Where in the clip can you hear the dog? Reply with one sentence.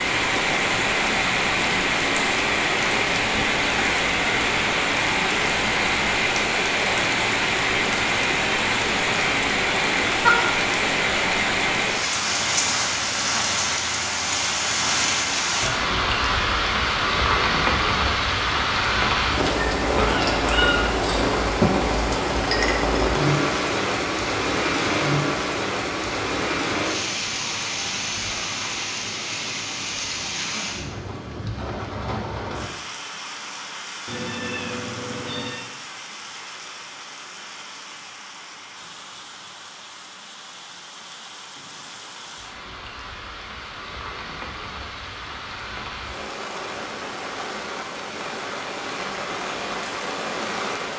You can't hear the dog here.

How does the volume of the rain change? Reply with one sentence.
The loudness of the rain goes down.